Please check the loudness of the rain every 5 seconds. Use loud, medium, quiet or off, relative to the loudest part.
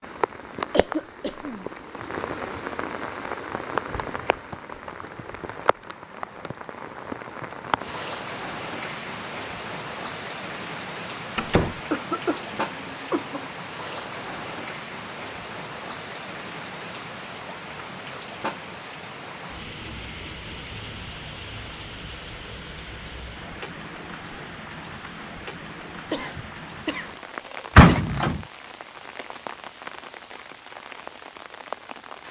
loud, loud, loud, loud, medium, medium, medium.